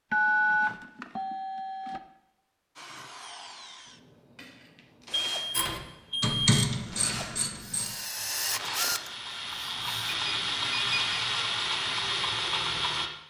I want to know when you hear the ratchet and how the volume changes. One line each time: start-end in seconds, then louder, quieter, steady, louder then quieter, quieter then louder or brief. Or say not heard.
5.5-13.1 quieter then louder.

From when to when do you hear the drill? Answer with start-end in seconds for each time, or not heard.
2.8-10.2.